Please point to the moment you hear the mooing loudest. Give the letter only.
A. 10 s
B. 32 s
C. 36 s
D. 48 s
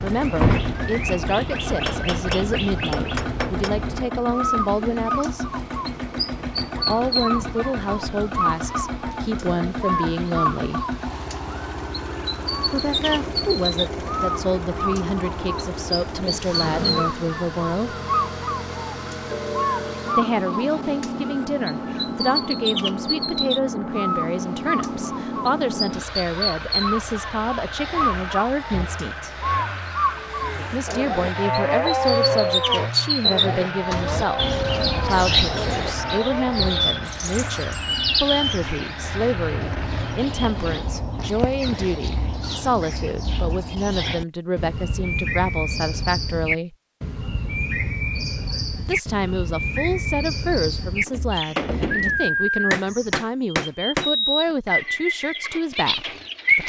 B.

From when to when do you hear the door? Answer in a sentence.
You can hear the door from 0.4 to 0.8 s and from 51.0 to 52.3 s.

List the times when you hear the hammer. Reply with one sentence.
The hammer can be heard from 1.6 to 3.7 s and from 52.7 to 54.5 s.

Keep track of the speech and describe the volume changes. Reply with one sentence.
The loudness of the speech stays about the same.